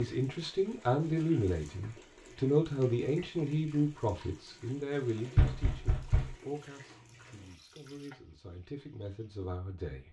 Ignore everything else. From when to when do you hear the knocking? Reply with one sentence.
The knocking can be heard from 5.3 to 6.3 s.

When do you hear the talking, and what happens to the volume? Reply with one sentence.
The talking can be heard from 0.0 to 10.0 s, getting quieter.